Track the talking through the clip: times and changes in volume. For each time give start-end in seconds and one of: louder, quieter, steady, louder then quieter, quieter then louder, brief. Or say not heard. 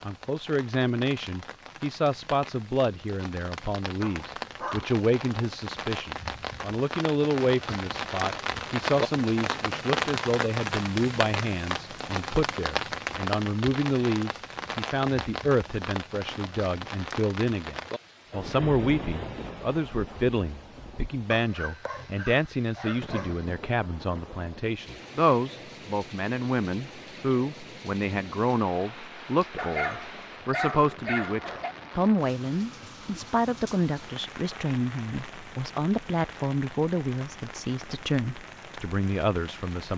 0.0-39.9 steady.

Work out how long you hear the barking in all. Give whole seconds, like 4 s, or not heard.
6 s.